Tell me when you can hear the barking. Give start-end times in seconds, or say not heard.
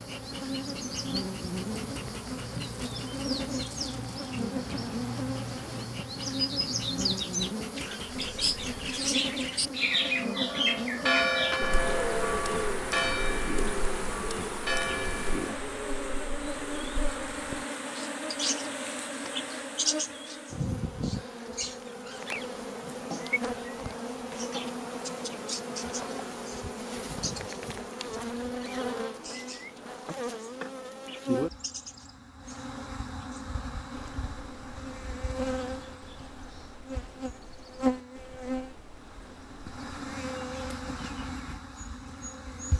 not heard.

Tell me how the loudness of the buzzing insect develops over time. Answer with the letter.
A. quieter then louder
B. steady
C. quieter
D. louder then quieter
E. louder
B.